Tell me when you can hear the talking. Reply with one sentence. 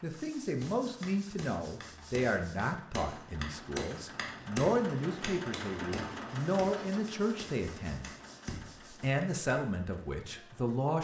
The talking can be heard from 0.0 to 8.1 s and from 9.0 to 10.9 s.